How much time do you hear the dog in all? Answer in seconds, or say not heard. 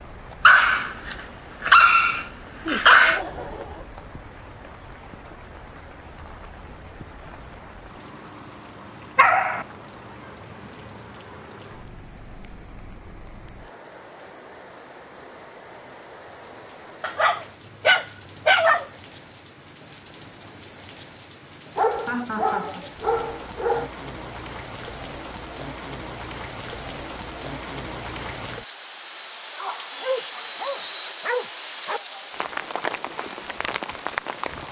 9 s.